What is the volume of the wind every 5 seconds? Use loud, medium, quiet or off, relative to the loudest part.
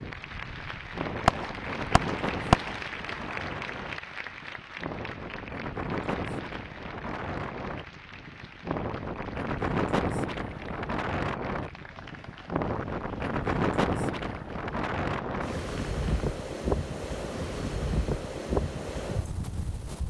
medium, loud, loud, loud.